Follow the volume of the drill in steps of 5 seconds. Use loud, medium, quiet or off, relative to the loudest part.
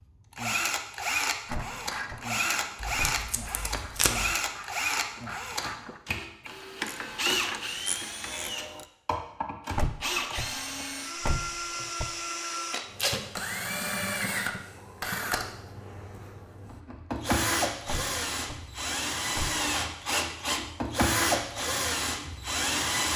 loud, medium, medium, loud, loud.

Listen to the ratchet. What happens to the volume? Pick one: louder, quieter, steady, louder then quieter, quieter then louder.
quieter then louder.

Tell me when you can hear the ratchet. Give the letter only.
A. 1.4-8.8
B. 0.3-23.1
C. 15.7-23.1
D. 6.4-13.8
A.